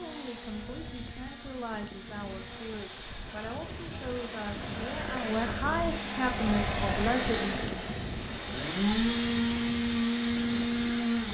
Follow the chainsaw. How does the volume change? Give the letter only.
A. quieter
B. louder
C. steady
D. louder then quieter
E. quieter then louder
B.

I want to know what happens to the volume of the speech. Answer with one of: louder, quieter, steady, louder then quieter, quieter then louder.
louder.